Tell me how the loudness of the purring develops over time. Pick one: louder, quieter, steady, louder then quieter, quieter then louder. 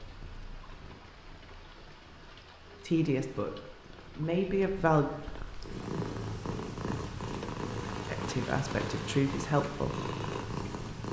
louder.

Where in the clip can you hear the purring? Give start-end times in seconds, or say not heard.
0.0-11.0.